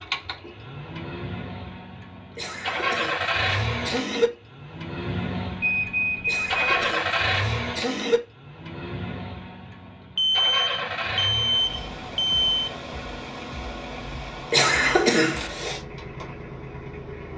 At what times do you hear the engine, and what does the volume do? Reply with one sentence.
You can hear the engine from 0.0 to 17.3 s, getting quieter.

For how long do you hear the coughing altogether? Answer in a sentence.
The coughing can be heard for 5 seconds in total.